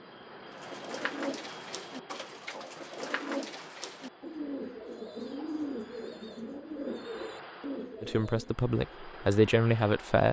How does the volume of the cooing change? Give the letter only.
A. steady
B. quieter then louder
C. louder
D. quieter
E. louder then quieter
A.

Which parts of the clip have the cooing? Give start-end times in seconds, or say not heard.
0.5-8.6.